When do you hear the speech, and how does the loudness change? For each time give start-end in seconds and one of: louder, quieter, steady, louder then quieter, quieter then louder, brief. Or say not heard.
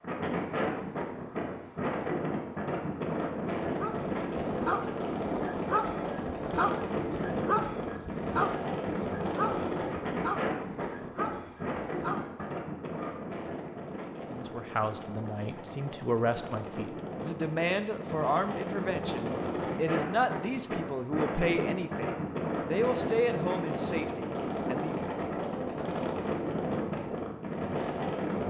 14.3-25.2 steady.